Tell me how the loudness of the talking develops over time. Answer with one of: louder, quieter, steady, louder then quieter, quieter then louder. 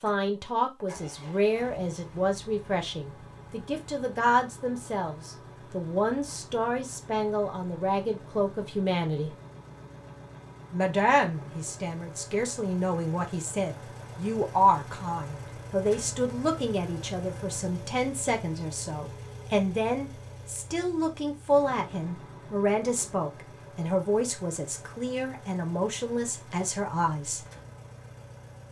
steady.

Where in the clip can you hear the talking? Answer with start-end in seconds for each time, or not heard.
0.0-9.3, 10.7-27.4.